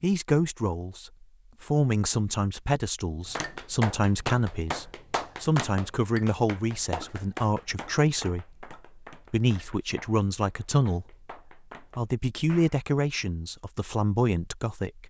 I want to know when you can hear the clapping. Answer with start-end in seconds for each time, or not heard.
3.3-12.8.